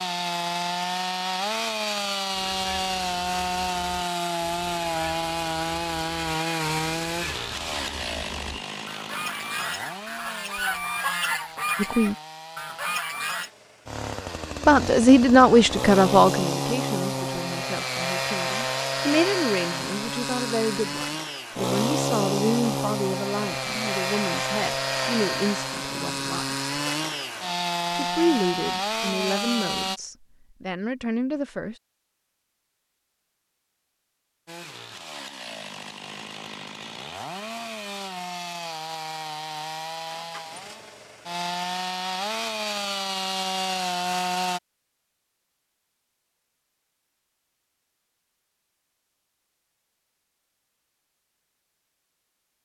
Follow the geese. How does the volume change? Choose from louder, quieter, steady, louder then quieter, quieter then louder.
louder.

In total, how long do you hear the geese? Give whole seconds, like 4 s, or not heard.
11 s.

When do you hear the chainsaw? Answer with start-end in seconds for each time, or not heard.
0.0-30.0, 34.5-44.6.